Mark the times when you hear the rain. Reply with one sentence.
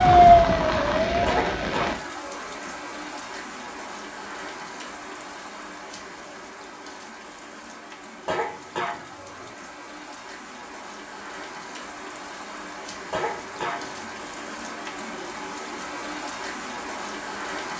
The rain can be heard from 0.0 to 17.7 s.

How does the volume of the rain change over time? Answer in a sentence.
The volume of the rain goes down, then up.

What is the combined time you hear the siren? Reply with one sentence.
The siren can be heard for 2 seconds in total.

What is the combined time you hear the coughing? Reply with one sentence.
You can hear the coughing for 3 seconds altogether.